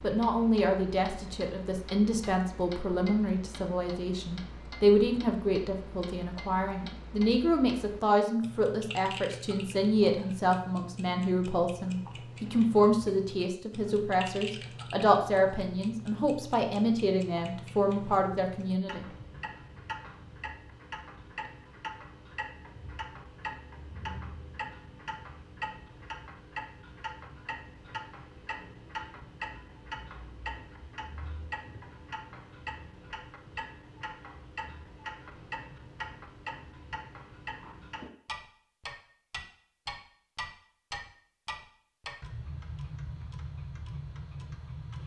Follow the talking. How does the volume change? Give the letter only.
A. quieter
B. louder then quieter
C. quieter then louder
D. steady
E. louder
D.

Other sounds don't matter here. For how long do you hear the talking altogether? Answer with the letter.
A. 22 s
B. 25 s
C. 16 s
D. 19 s
D.